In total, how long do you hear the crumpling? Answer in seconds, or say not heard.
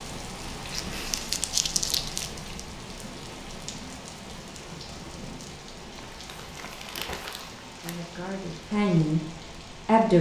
4 s.